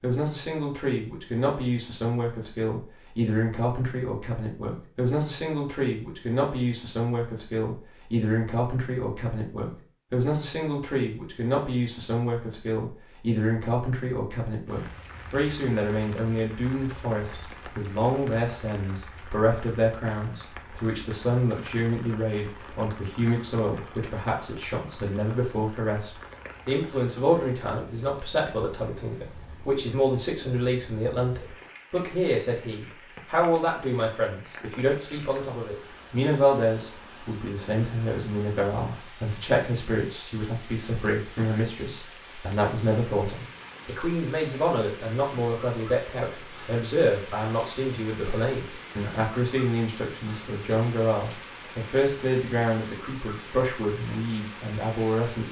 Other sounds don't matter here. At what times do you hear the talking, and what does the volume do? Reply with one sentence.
You can hear the talking from 0.0 to 55.4 s, at a steady volume.